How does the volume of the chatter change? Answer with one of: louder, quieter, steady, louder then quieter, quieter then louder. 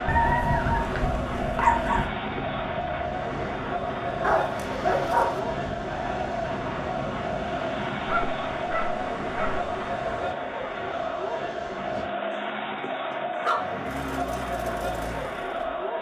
steady.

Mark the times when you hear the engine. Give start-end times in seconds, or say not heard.
13.6-15.8.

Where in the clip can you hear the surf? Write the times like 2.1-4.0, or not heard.
0.0-12.1.